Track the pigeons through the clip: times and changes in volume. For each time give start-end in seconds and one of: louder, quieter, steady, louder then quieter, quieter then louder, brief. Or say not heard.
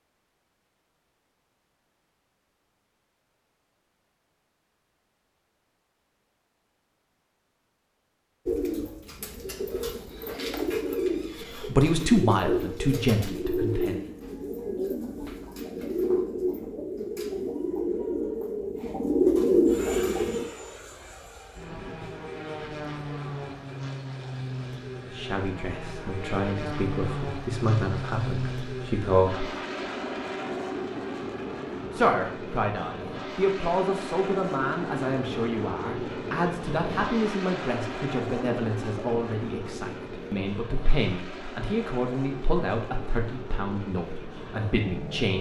8.4-20.4 louder.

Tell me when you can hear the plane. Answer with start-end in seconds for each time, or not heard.
19.6-45.3.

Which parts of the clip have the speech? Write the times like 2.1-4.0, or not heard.
11.6-14.0, 25.1-29.4, 31.9-45.3.